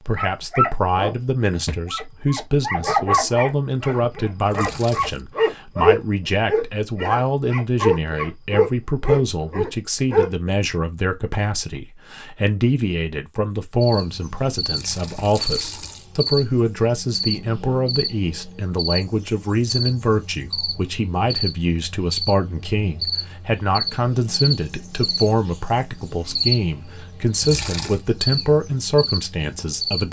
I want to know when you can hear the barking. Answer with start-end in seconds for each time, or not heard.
0.1-10.3.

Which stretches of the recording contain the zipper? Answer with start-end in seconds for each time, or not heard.
not heard.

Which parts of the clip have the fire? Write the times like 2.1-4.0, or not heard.
not heard.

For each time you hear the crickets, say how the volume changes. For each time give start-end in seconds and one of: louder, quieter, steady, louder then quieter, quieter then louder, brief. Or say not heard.
13.8-30.0 steady.